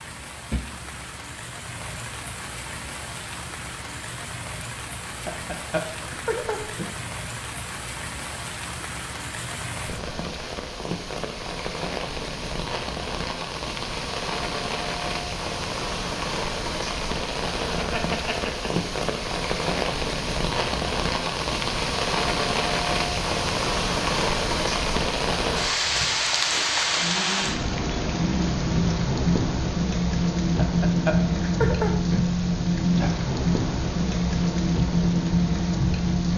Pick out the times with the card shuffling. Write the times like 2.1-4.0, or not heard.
not heard.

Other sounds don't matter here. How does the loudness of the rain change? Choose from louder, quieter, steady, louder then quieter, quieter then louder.
louder.